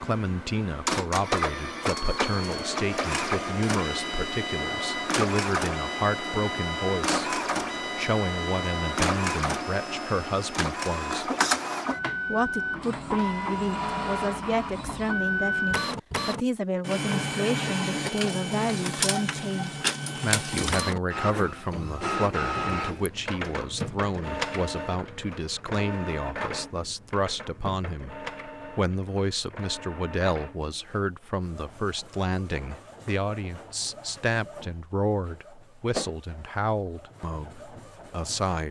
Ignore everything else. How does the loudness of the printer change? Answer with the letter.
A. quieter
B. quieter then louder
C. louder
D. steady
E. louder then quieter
A.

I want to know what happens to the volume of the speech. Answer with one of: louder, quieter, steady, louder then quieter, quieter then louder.
steady.